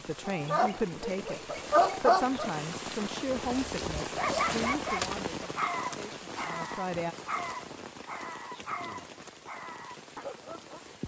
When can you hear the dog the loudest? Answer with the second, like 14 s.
2 s.